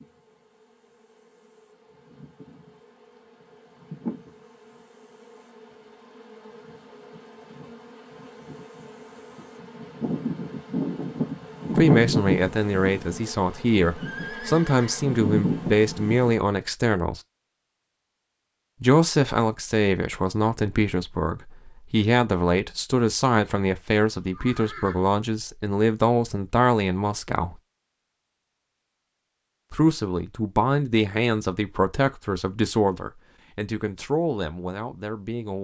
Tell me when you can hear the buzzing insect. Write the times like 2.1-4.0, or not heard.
0.0-16.4.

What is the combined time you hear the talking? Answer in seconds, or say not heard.
20 s.